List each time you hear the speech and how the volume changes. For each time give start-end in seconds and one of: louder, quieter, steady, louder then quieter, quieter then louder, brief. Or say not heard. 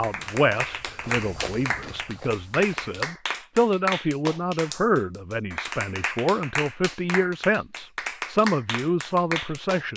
0.0-9.9 steady.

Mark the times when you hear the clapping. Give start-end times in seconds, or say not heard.
0.0-9.9.